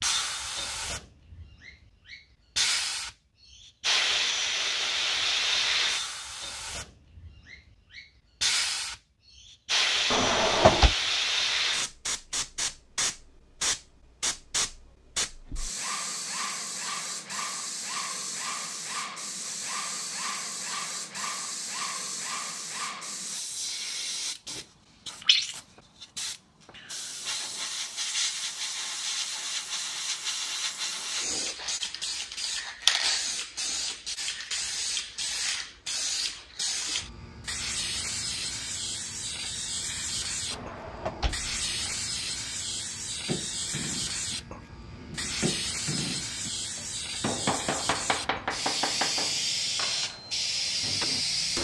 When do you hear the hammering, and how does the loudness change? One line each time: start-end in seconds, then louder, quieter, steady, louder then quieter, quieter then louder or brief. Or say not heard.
43.2-51.2 louder then quieter.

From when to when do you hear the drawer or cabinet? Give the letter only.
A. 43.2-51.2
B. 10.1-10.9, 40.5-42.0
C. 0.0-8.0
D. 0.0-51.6
B.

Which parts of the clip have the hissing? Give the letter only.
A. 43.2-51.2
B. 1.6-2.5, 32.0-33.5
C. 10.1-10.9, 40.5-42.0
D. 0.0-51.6
D.